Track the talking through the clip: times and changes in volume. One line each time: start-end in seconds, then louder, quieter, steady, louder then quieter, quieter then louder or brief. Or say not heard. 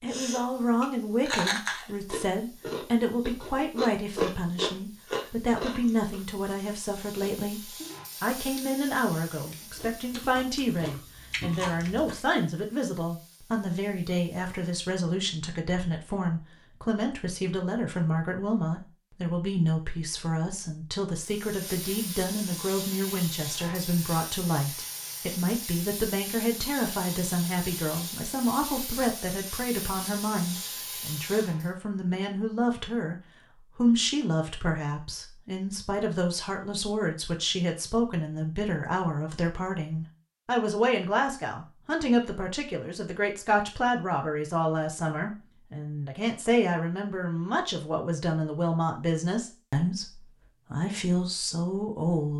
0.0-52.3 steady.